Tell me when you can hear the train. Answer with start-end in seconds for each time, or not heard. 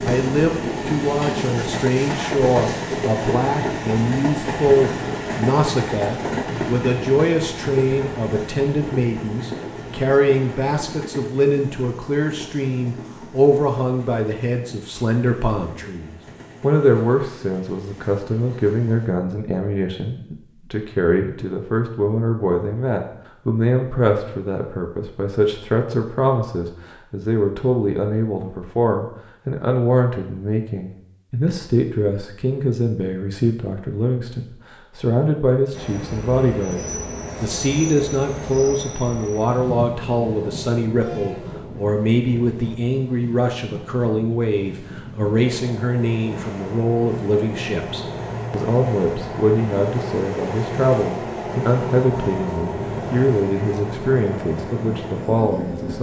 0.0-19.1, 35.7-55.9.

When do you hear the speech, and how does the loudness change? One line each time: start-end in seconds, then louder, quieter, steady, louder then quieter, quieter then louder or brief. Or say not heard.
0.0-55.9 steady.